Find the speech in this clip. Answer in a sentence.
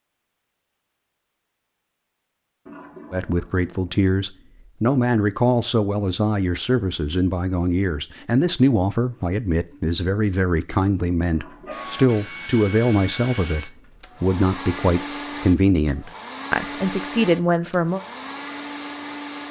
The speech can be heard from 3.1 to 18.0 s.